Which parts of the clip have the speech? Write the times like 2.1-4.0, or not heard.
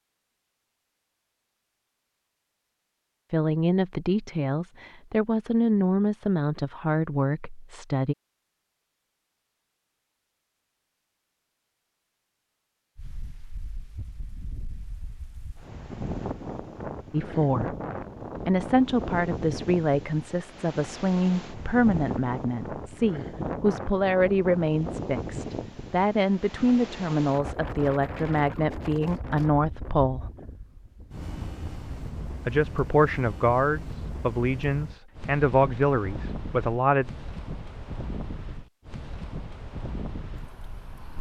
3.3-8.2, 17.1-17.8, 18.4-30.2, 32.5-37.1.